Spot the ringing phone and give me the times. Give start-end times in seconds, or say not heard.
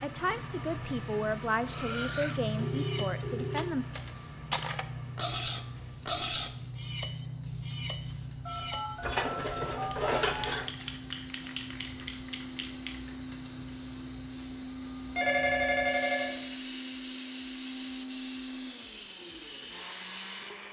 2.6-3.7, 8.4-10.4, 15.2-16.4.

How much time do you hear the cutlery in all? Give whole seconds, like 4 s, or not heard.
10 s.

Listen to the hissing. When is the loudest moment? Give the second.
3 s.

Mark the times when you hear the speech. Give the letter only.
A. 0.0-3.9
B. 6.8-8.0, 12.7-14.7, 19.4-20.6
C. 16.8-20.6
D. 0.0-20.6
A.